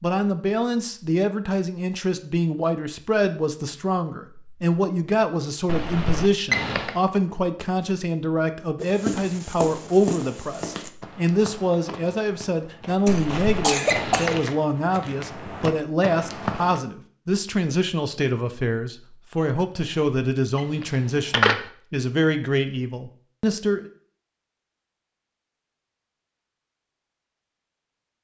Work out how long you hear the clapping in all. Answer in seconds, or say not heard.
not heard.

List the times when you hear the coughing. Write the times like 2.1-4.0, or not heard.
13.1-14.3.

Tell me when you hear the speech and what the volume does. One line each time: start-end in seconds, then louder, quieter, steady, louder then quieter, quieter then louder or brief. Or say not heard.
0.0-23.9 steady.